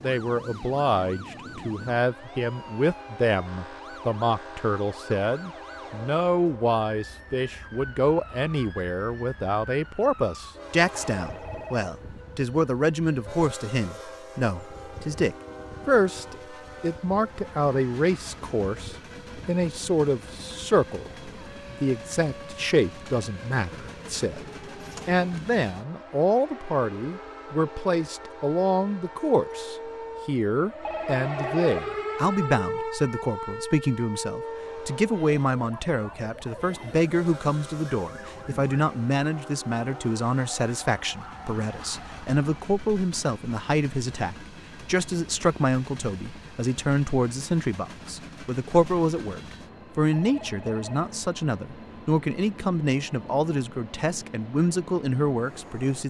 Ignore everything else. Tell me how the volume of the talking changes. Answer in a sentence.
The volume of the talking stays about the same.